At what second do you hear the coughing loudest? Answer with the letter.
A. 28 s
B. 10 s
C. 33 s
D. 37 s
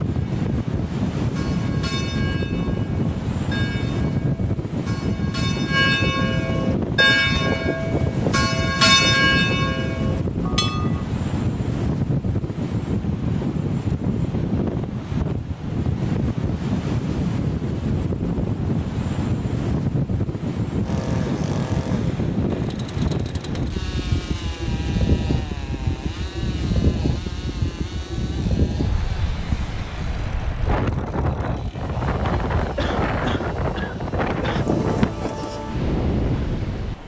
C.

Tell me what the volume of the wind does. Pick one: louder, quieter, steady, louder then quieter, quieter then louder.
steady.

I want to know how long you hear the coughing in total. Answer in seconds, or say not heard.
2 s.